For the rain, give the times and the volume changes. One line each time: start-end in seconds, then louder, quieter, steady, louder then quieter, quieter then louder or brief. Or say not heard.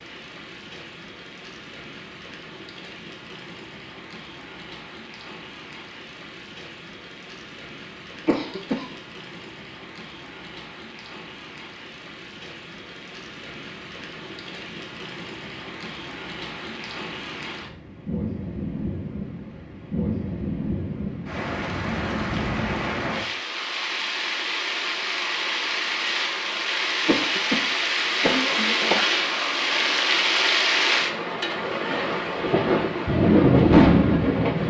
0.0-34.6 louder.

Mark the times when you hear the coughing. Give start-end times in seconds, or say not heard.
8.2-8.8, 27.1-29.1.